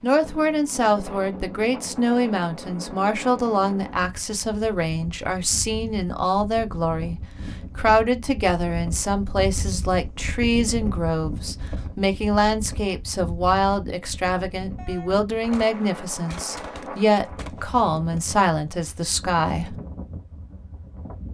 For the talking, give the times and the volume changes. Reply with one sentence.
The talking can be heard from 0.0 to 19.8 s, at a steady volume.